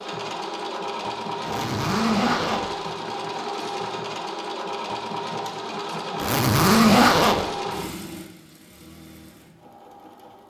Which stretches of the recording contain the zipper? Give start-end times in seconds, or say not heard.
1.4-2.7, 6.2-7.5.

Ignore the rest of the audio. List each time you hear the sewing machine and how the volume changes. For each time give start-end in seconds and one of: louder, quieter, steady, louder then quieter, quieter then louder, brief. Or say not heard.
0.0-10.4 quieter.